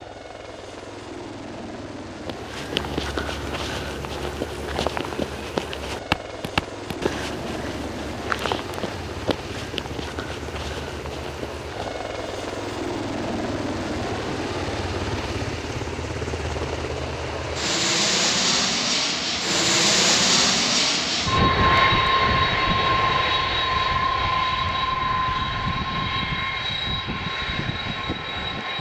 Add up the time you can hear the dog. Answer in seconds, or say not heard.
not heard.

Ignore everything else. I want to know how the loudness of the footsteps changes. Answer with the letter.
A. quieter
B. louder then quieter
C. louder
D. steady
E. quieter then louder
A.